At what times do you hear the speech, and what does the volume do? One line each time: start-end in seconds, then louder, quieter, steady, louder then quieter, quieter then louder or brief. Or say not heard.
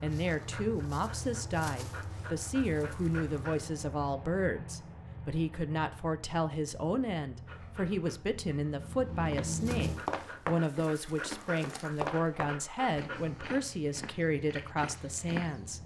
0.0-15.8 steady.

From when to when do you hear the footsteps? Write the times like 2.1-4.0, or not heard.
9.2-15.6.